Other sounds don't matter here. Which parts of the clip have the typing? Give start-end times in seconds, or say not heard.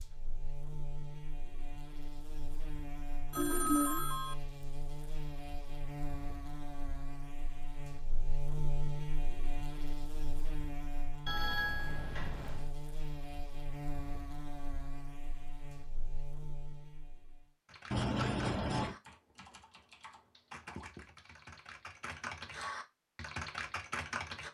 17.6-24.4.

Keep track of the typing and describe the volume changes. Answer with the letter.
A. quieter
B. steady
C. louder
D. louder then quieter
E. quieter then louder
E.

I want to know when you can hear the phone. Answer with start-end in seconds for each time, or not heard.
3.3-4.3, 11.2-12.7, 17.9-18.9.